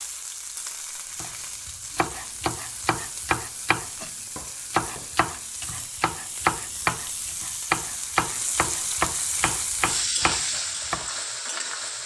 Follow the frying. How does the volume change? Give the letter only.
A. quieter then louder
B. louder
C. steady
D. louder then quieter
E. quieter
B.